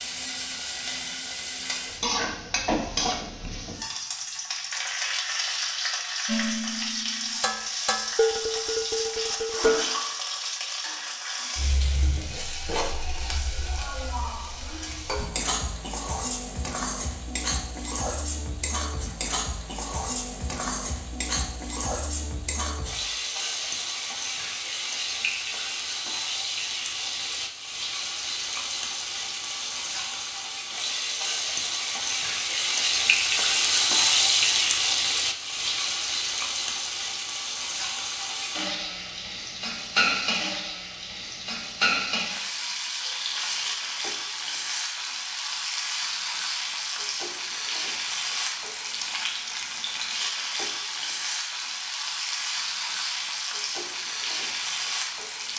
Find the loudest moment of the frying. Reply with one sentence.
The volume of the frying peaks at 34 seconds.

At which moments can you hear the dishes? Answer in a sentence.
The dishes can be heard from 6.2 to 9.9 s.